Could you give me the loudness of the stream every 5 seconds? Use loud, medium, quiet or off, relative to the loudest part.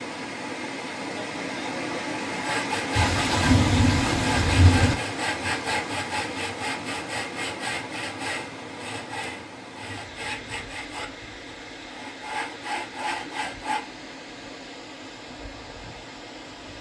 loud, medium, medium, medium.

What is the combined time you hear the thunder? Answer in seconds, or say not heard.
2 s.